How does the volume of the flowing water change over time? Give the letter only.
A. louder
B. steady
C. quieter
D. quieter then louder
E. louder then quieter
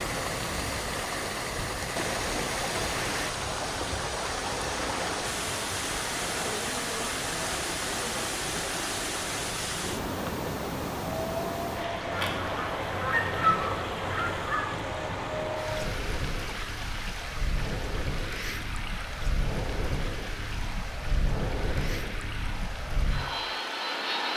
C.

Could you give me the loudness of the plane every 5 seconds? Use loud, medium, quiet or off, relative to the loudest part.
medium, medium, loud, loud, loud.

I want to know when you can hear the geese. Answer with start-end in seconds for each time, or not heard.
12.1-14.7.